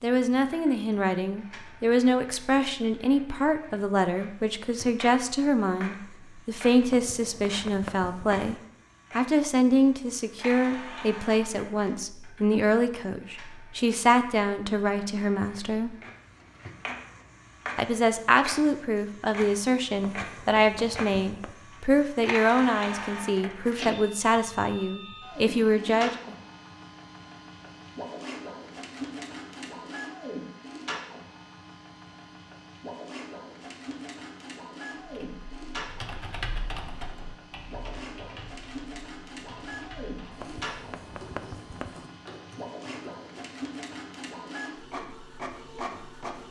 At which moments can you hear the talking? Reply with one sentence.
The talking can be heard from 0.0 to 15.9 s and from 17.8 to 26.4 s.